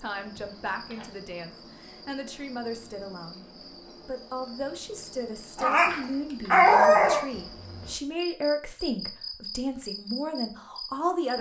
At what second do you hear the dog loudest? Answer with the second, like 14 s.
7 s.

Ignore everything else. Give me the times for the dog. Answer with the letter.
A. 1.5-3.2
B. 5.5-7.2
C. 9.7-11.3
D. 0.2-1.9
B.